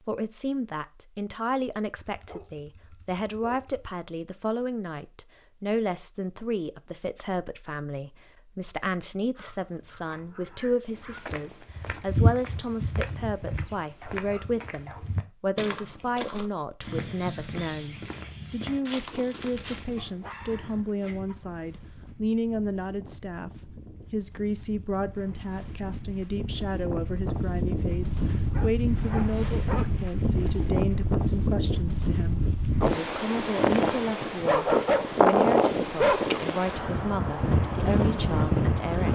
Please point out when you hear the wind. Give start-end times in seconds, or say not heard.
18.8-39.1.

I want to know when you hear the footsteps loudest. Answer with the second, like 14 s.
12 s.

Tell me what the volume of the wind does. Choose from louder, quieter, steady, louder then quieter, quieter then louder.
louder.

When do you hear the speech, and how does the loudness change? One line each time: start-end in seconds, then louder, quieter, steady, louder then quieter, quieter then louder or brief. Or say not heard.
0.1-39.1 steady.